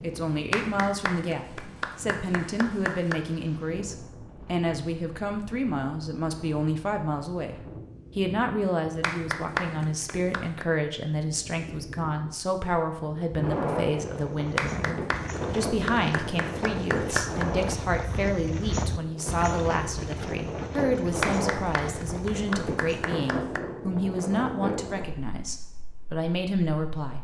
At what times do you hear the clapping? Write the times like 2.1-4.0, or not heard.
0.5-3.2, 9.0-10.7, 14.6-17.4, 21.2-23.6.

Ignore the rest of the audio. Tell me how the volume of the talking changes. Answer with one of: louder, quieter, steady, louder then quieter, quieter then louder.
steady.